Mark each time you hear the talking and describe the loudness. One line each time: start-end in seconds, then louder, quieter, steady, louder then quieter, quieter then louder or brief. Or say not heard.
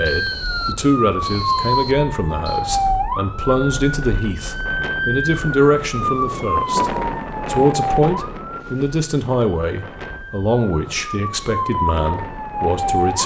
0.0-13.2 steady.